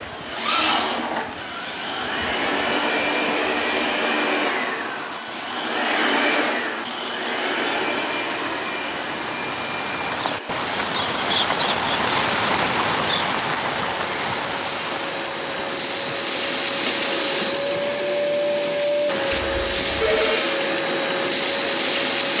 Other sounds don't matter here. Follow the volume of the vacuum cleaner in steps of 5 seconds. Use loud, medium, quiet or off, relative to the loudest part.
loud, loud, medium, loud, loud.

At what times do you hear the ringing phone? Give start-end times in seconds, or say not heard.
19.3-20.4.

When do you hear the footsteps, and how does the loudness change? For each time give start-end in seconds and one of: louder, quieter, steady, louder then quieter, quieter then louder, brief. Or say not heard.
not heard.